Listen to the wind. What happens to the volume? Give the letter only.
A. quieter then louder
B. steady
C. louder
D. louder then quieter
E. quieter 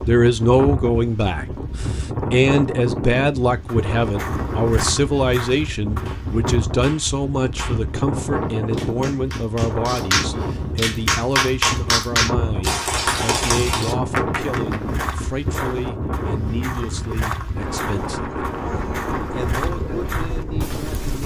B.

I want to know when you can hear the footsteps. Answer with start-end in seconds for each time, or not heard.
3.6-6.7, 14.2-21.2.